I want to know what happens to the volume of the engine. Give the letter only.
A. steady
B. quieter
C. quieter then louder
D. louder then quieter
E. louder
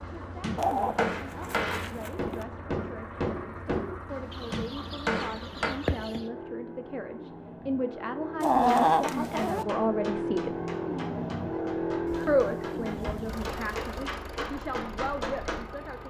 D.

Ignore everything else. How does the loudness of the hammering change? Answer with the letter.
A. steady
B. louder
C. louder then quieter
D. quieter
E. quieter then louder
E.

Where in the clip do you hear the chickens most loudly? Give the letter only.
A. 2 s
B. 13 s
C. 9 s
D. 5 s
C.